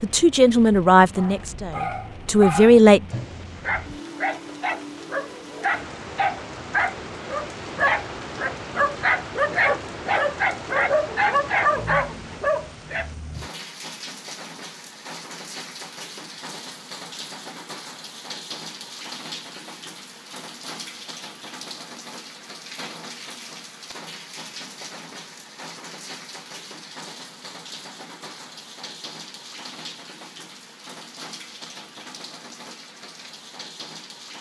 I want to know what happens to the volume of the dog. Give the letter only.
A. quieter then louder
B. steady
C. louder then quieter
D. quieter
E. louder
E.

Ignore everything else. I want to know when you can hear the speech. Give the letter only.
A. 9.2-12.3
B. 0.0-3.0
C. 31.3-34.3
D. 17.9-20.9
B.